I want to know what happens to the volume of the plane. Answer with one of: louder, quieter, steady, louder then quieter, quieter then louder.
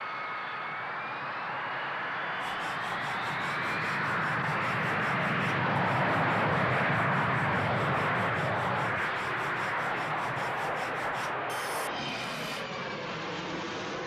louder then quieter.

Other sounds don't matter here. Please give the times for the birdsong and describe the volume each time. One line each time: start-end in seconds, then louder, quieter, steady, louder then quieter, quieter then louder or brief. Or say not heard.
not heard.